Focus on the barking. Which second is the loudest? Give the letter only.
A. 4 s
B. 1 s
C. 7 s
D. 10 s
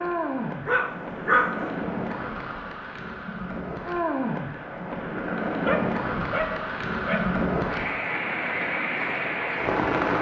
B.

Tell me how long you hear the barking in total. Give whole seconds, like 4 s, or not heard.
3 s.